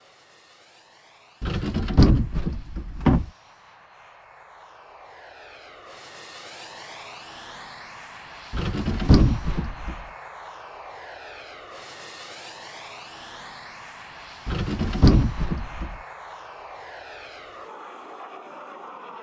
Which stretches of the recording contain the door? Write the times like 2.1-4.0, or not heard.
1.4-3.3, 8.5-10.0, 14.4-15.9.